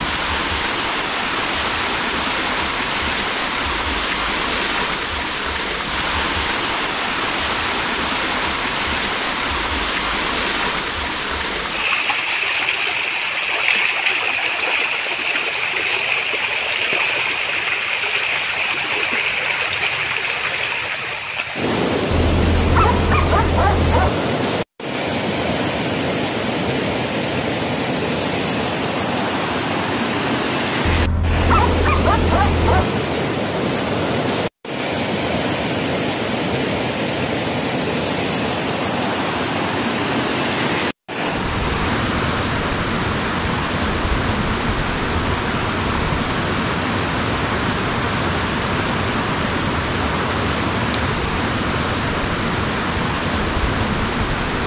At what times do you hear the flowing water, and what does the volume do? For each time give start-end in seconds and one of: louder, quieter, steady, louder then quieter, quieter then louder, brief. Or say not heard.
0.0-54.6 steady.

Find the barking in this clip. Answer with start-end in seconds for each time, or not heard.
22.1-24.1, 30.9-32.9.